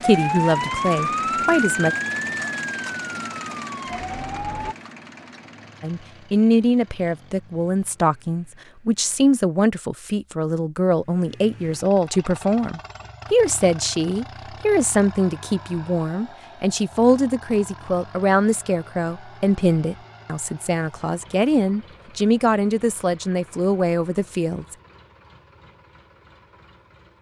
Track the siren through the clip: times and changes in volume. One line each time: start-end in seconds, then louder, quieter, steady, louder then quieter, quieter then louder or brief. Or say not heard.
0.0-4.8 quieter.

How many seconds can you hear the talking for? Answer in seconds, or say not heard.
21 s.